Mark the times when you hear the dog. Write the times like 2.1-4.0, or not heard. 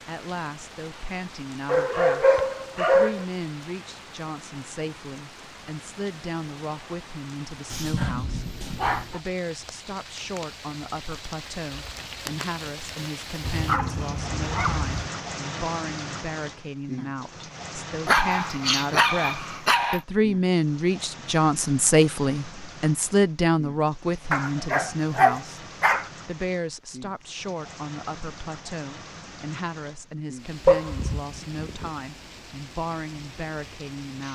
1.6-3.2, 7.7-9.2, 13.4-15.1, 18.1-20.0, 24.3-26.1, 30.6-31.9.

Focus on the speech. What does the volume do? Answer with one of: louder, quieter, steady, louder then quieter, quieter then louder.
louder then quieter.